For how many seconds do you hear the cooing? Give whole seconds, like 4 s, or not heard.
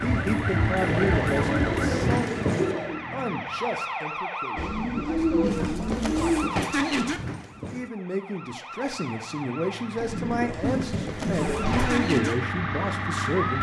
6 s.